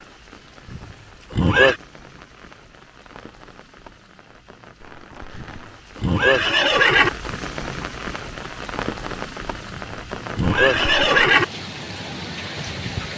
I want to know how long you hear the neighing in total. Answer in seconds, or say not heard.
5 s.